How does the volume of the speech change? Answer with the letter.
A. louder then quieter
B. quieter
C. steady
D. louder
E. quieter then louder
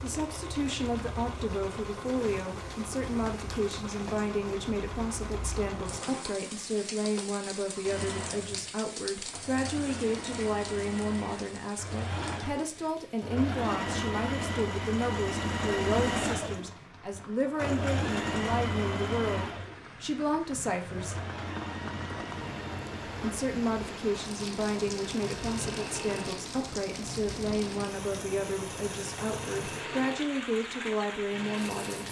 C.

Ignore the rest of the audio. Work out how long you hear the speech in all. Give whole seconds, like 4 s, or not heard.
30 s.